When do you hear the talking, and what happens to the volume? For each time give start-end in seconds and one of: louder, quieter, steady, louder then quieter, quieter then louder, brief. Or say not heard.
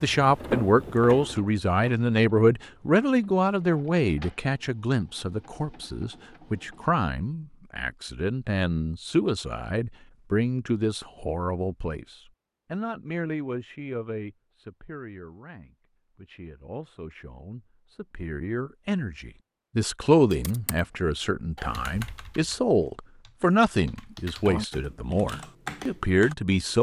0.0-26.7 quieter then louder.